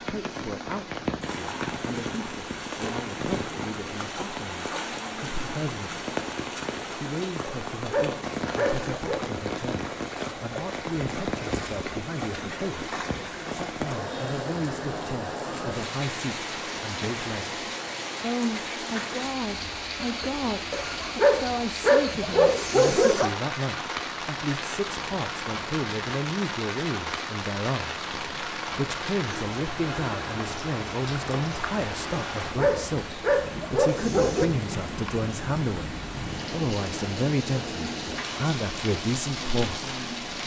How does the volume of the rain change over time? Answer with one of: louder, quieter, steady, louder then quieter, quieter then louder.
steady.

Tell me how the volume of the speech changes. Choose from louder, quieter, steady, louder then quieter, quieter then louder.
louder.